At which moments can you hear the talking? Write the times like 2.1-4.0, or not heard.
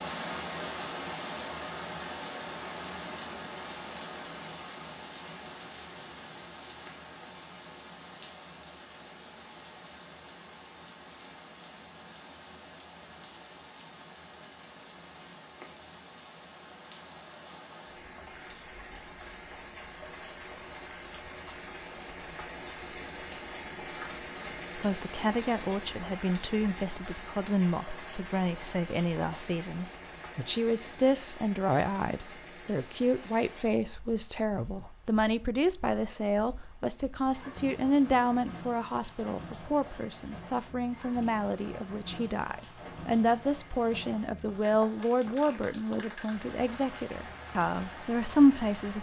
24.8-48.9.